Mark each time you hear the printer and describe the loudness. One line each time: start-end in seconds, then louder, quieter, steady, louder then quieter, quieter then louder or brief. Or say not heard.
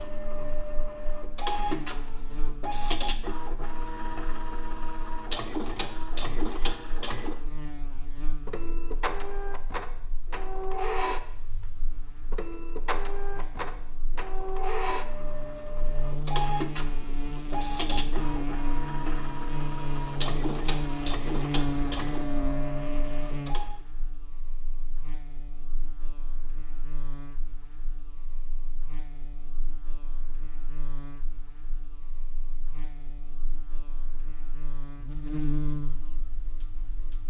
0.0-23.8 steady.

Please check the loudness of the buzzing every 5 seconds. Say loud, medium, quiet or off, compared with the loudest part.
quiet, quiet, quiet, loud, loud, quiet, quiet, loud.